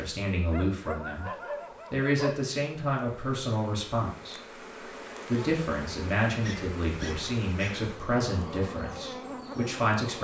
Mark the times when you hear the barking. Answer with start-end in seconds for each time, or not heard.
0.5-2.4, 6.4-7.9.